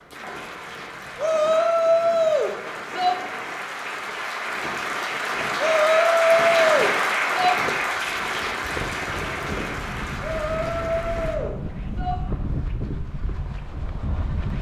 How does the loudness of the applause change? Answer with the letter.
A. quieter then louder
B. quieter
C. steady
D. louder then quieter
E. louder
D.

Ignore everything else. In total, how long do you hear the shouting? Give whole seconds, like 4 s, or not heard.
6 s.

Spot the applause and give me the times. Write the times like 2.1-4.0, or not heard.
0.0-11.3.